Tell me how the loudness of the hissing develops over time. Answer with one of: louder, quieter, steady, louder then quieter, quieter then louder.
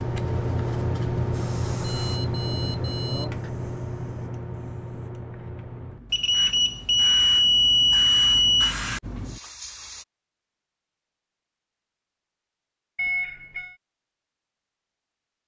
quieter then louder.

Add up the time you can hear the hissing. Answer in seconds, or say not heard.
10 s.